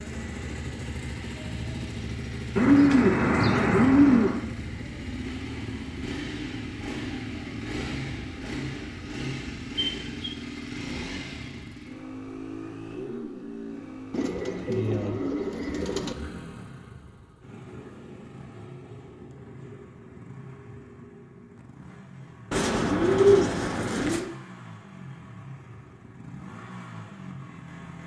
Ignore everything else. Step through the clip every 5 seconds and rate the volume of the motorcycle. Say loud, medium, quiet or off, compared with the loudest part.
loud, loud, loud, medium, medium, medium.